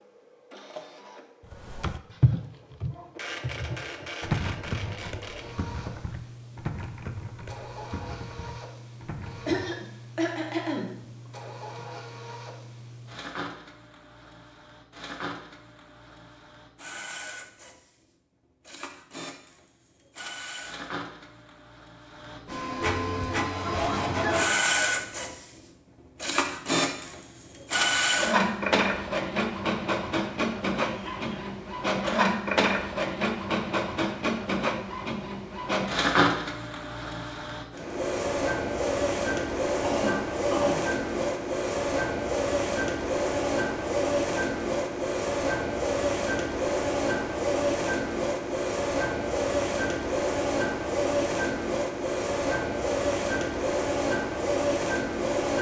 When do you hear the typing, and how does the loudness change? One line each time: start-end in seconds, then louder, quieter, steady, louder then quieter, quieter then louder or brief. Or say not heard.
1.5-9.8 quieter.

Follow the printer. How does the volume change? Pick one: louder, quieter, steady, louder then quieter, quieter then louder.
louder.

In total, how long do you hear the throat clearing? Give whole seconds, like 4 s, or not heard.
3 s.